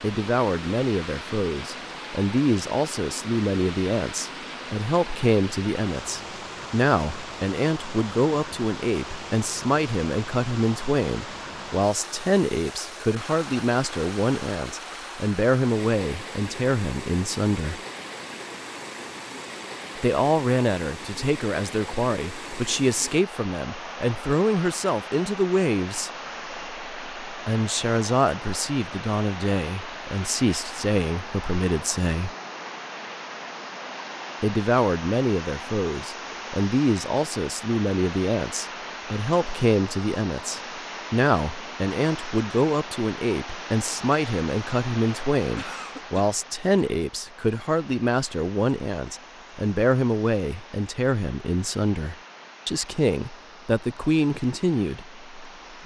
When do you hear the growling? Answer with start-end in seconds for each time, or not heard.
not heard.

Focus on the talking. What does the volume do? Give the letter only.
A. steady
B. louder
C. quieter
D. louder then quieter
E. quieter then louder
A.